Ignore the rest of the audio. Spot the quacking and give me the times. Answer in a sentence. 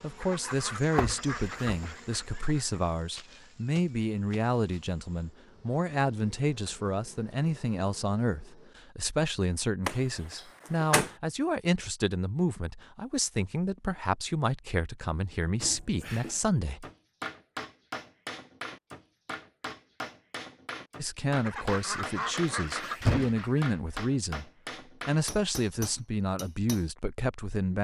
The quacking can be heard from 0.2 to 2.8 s and from 21.4 to 23.7 s.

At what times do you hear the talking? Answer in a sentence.
You can hear the talking from 0.0 to 16.9 s, from 20.9 to 24.4 s and from 25.1 to 27.7 s.